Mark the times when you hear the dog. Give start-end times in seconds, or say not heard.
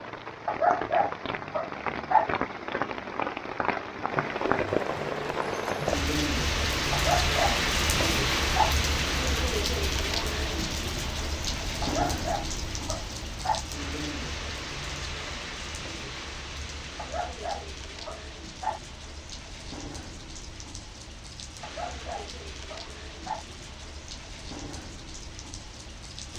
0.5-2.3, 6.9-8.8, 11.8-13.7, 16.9-18.8, 21.6-23.4.